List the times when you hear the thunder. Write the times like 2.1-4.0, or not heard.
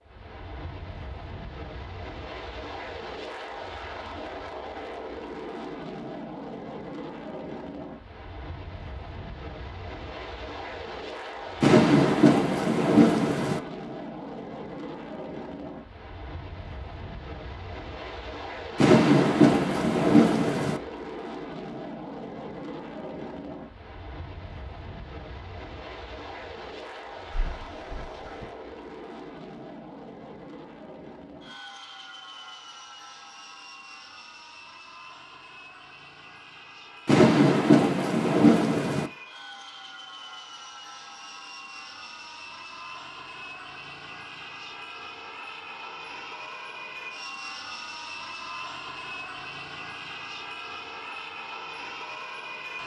11.6-13.6, 18.8-20.8, 37.0-39.1.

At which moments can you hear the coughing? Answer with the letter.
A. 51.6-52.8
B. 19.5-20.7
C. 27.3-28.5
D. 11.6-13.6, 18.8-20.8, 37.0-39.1
C.